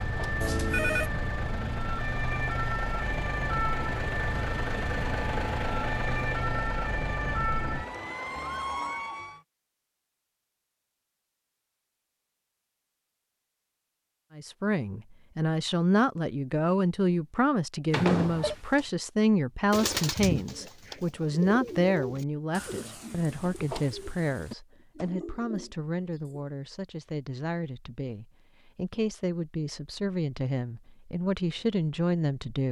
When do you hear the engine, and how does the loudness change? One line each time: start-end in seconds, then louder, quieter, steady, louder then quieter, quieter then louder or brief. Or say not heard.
0.0-9.4 louder then quieter.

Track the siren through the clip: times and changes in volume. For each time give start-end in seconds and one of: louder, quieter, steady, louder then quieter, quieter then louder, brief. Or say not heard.
0.0-9.4 steady.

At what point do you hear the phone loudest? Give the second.
1 s.